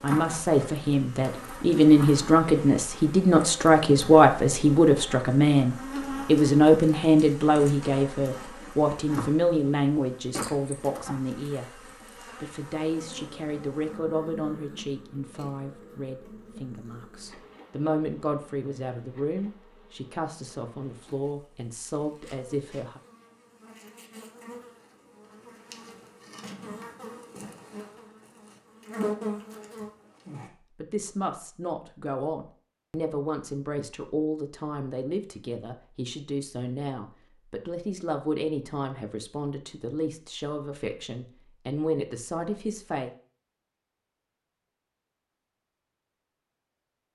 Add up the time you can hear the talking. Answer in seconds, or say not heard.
35 s.